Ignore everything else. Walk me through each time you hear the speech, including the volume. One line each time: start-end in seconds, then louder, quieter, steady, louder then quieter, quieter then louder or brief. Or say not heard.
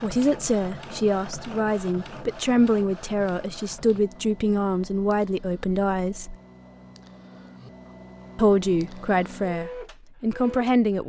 0.0-6.3 steady
8.3-11.0 brief.